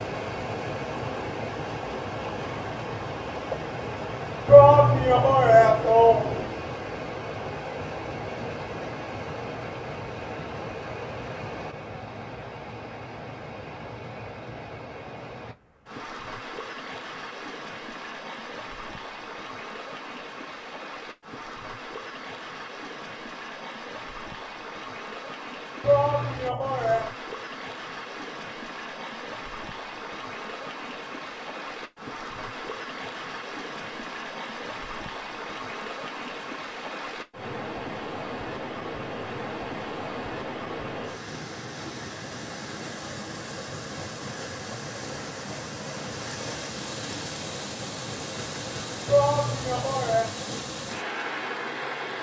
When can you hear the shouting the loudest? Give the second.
5 s.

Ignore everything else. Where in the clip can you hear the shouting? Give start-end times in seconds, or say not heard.
4.5-6.4, 25.8-27.1, 49.0-50.3.